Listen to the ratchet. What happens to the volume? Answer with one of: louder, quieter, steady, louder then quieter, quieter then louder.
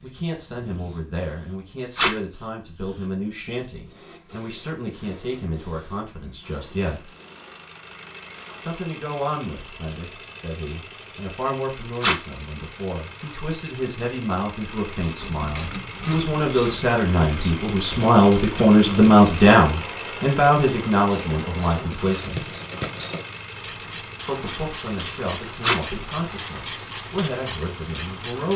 louder.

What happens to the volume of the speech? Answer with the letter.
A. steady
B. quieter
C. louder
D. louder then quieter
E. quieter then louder
D.